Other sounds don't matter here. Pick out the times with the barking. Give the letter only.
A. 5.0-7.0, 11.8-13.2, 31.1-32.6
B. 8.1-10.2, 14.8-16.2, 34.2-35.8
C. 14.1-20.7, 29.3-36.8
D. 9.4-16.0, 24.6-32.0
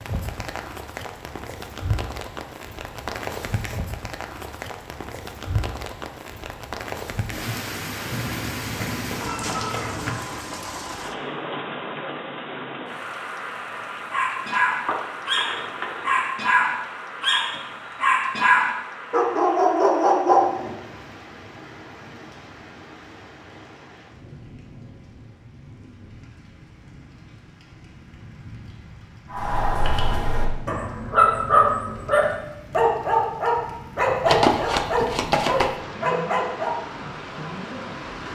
C.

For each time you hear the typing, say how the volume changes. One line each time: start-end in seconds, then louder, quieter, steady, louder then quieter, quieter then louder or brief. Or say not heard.
not heard.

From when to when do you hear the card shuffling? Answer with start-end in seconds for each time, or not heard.
8.1-10.2, 14.8-16.2, 34.2-35.8.